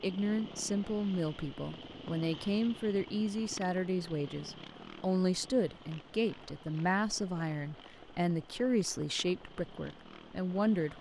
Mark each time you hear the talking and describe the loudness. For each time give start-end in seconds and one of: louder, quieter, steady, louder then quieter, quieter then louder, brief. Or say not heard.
0.0-10.9 steady.